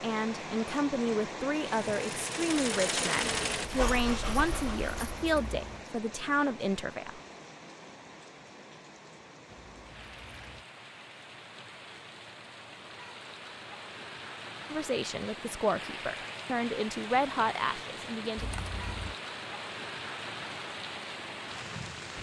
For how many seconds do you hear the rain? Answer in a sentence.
The rain can be heard for 22 seconds in total.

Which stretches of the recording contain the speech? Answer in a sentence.
The speech can be heard from 0.0 to 7.2 s and from 14.7 to 18.5 s.